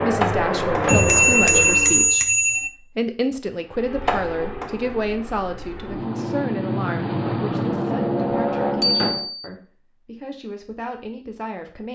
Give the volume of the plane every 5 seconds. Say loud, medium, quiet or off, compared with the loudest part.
loud, loud, off.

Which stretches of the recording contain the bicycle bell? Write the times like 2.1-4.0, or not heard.
0.8-2.7, 8.8-9.5.